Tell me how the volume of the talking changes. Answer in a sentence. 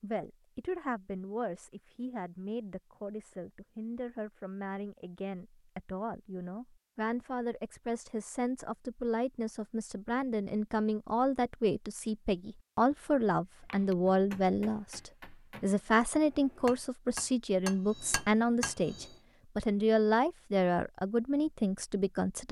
The volume of the talking goes up.